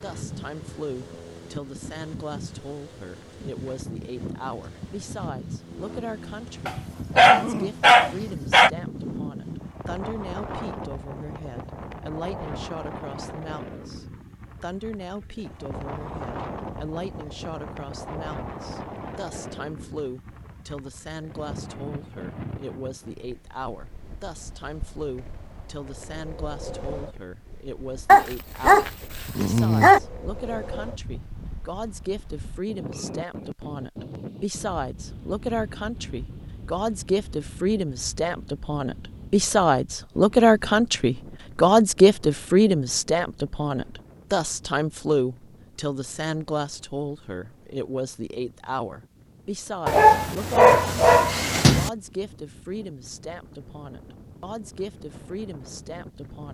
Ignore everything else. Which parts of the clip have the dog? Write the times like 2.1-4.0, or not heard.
6.7-8.7, 28.1-30.0, 49.9-51.9.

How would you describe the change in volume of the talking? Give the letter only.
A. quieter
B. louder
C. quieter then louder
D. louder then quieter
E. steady
D.